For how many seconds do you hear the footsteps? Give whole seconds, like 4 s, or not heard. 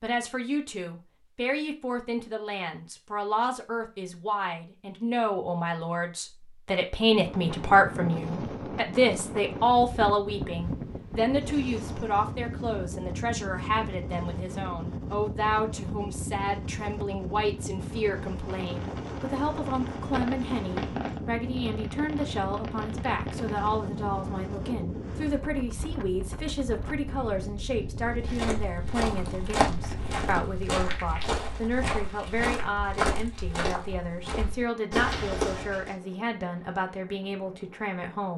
8 s.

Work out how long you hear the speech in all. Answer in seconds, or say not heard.
38 s.